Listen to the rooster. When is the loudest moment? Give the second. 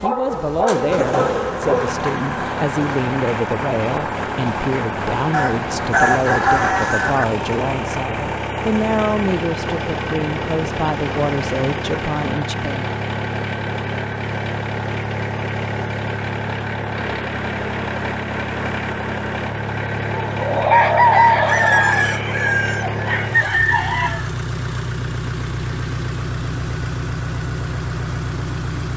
21 s.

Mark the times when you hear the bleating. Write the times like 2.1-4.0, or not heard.
not heard.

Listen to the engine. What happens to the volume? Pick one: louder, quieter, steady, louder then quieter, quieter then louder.
steady.